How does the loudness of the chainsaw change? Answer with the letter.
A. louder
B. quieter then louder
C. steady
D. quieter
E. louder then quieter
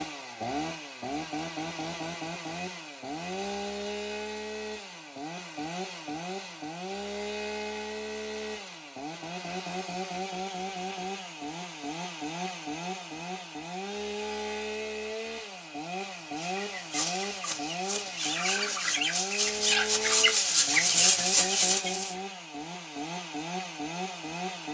C.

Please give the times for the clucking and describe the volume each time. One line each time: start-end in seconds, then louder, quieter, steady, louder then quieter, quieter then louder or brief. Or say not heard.
16.2-22.1 louder.